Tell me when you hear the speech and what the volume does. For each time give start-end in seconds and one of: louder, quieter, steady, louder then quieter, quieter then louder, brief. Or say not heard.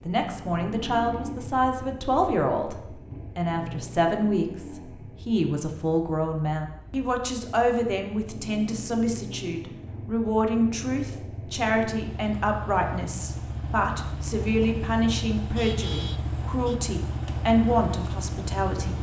0.1-18.9 steady.